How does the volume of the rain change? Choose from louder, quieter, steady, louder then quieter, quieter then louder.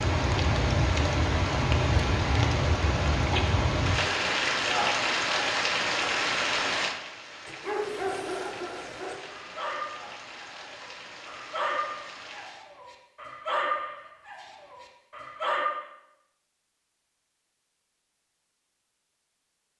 quieter.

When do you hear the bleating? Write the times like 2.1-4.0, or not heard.
not heard.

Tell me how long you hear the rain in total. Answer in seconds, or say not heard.
13 s.